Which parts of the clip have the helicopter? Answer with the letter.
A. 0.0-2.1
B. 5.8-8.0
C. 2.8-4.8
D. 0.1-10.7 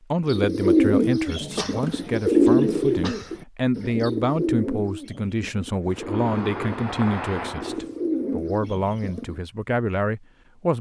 B.